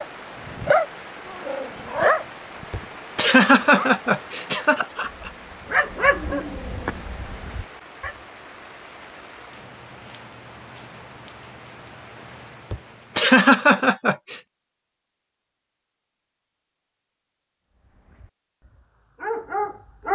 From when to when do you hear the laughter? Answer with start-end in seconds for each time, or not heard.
2.7-5.3, 12.7-14.4.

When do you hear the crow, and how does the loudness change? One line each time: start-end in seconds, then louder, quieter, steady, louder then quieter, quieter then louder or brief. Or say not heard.
not heard.